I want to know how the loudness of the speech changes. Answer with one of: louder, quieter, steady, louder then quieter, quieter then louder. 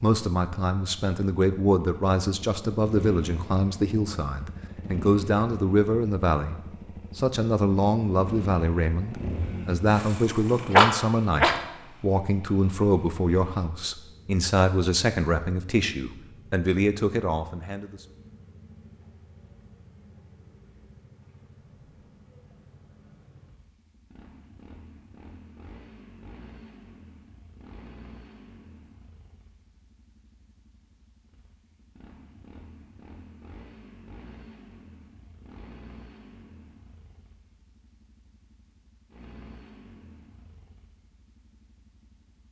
steady.